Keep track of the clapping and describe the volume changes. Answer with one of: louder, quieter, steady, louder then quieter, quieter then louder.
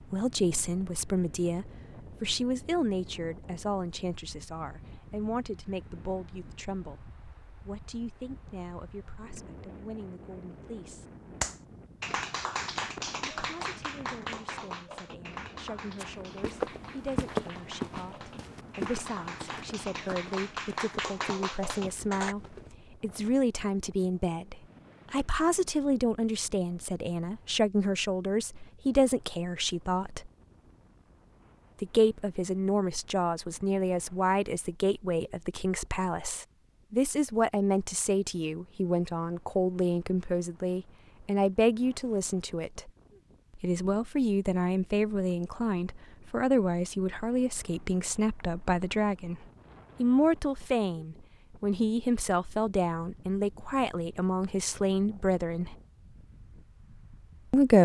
quieter then louder.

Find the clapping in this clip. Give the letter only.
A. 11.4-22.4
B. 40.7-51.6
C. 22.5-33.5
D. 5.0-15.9
A.